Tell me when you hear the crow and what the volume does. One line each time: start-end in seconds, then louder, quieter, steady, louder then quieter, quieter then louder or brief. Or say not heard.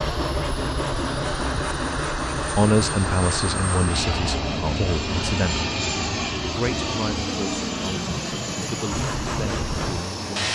not heard.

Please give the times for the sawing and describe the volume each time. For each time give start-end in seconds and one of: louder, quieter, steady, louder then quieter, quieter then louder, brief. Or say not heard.
0.0-5.3 quieter
8.9-10.4 brief.